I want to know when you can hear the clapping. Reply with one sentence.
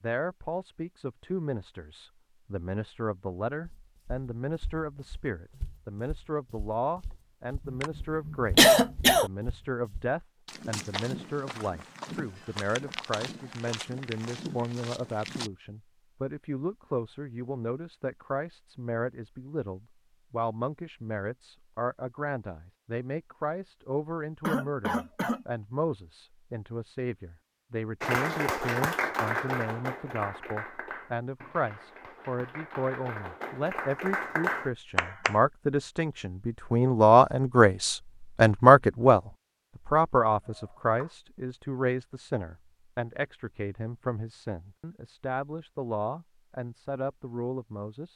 You can hear the clapping from 28.0 to 35.4 s.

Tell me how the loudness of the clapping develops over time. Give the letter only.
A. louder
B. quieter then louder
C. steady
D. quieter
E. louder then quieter
B.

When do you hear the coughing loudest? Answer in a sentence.
The loudest moment of the coughing is at 9 seconds.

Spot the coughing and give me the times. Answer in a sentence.
You can hear the coughing from 7.7 to 9.3 s, from 24.4 to 25.4 s and from 40.5 to 41.1 s.